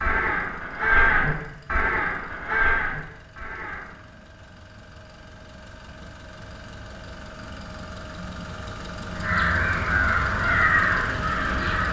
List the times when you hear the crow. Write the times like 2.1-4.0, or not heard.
0.0-3.9, 9.1-11.8.